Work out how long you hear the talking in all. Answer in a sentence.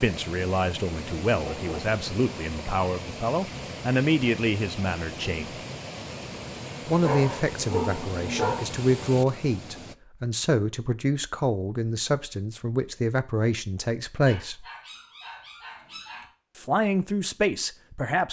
The talking can be heard for 15 seconds in total.